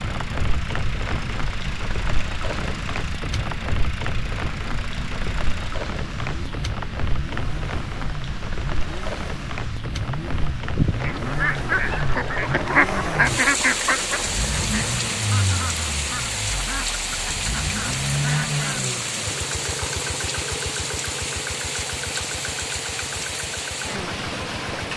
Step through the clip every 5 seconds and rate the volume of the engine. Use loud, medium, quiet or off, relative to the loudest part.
medium, medium, loud, loud, medium.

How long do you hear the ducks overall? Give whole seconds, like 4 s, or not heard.
8 s.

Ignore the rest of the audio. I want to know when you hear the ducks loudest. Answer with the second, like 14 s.
13 s.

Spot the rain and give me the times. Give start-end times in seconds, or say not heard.
0.0-24.9.